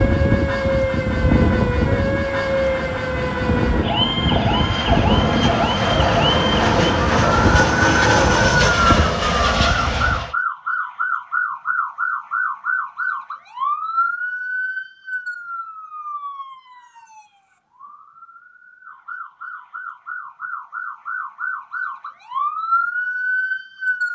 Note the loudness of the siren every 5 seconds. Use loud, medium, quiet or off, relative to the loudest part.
loud, loud, loud, quiet, loud.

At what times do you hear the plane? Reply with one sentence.
The plane can be heard from 0.0 to 10.3 s.